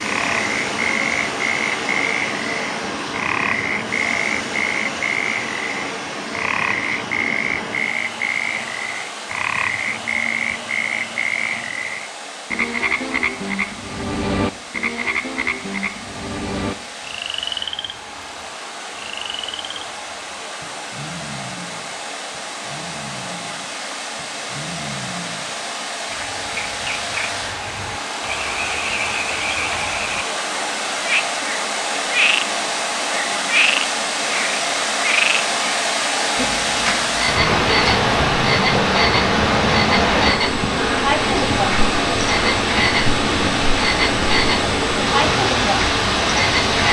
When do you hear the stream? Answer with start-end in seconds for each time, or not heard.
0.0-46.8.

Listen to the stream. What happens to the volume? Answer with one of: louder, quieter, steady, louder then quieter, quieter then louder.
quieter then louder.